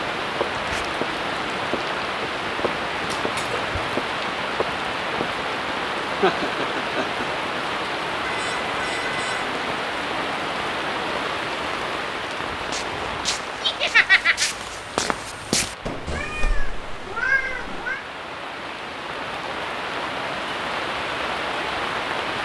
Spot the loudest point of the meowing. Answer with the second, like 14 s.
17 s.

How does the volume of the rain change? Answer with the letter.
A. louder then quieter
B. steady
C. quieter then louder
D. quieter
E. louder
C.